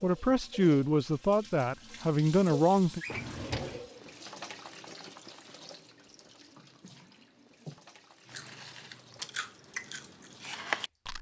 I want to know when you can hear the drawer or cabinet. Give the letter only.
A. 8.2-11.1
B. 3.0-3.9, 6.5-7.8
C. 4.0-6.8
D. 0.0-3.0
B.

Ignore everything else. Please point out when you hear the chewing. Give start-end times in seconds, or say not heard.
8.2-11.1.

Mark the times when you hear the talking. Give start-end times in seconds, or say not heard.
0.0-3.0.